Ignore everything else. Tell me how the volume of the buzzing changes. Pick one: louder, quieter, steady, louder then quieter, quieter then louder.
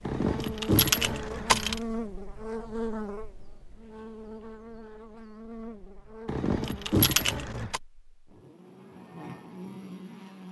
quieter.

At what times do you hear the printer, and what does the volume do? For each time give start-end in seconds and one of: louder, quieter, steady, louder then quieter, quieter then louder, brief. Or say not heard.
not heard.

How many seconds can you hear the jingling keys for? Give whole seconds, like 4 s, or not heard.
3 s.